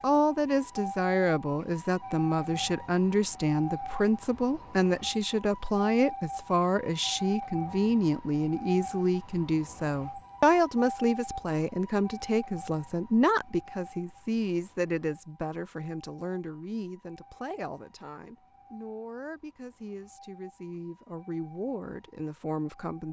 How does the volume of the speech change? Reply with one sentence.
The volume of the speech goes down.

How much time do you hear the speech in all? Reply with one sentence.
The speech can be heard for 23 seconds in total.